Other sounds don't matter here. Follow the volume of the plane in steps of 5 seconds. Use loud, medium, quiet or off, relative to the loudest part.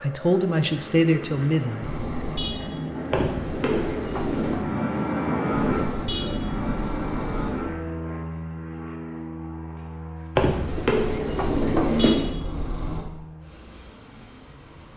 loud, loud, quiet.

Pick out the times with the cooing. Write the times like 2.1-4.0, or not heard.
3.1-4.7, 10.3-12.3.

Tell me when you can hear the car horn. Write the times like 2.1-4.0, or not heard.
1.8-2.7, 5.7-7.5, 11.4-13.1.